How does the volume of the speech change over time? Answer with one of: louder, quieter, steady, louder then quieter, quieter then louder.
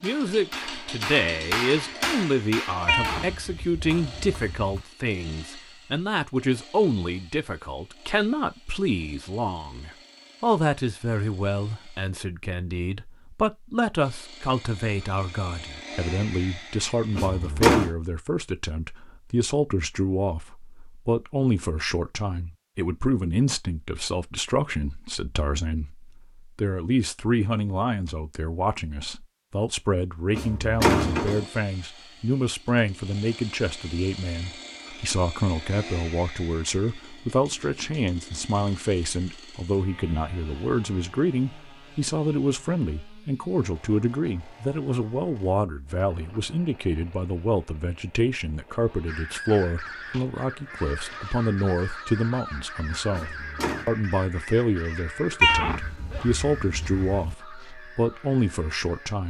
steady.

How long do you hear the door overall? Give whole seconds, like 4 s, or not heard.
3 s.